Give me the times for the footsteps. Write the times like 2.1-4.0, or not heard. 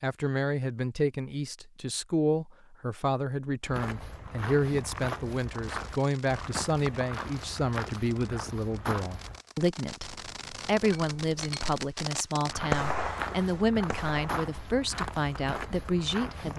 3.6-9.4, 12.4-16.5.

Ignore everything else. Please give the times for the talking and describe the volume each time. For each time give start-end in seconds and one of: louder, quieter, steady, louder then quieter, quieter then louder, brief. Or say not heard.
0.0-16.5 steady.